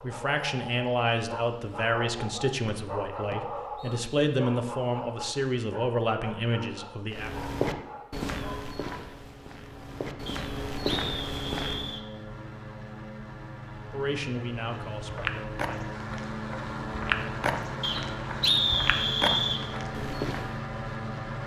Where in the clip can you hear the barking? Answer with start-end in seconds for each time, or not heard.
0.0-9.1.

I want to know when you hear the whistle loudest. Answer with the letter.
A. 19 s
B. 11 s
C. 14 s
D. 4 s
A.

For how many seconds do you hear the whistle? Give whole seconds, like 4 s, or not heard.
5 s.